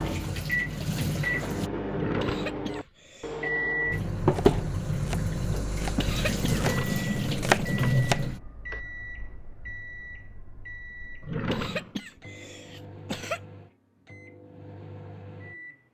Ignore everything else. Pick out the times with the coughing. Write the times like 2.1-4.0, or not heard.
2.1-3.5, 6.0-7.7, 11.4-13.4.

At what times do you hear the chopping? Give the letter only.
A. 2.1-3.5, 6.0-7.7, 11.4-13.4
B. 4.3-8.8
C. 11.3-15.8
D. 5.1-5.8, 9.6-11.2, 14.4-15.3
B.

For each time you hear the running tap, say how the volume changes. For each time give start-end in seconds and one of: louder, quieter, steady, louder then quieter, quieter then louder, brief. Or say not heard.
0.0-1.7 brief
3.9-8.4 quieter then louder.